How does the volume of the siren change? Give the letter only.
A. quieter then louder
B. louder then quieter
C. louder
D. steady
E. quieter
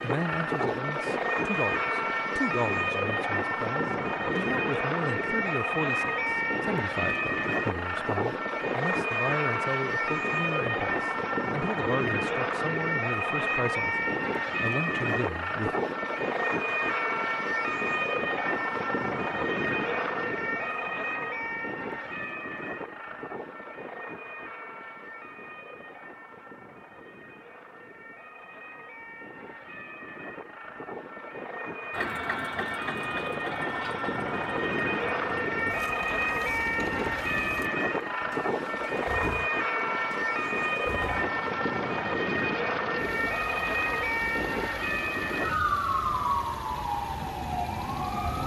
A.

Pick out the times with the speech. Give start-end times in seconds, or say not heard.
0.0-15.7.